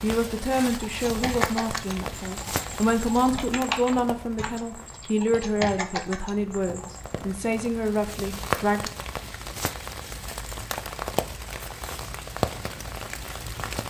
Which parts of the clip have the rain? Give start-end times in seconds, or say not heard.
0.0-13.8.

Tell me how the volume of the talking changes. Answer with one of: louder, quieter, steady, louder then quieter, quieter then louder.
steady.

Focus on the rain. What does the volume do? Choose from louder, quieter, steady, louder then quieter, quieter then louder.
quieter then louder.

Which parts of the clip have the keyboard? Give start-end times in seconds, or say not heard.
0.8-7.2.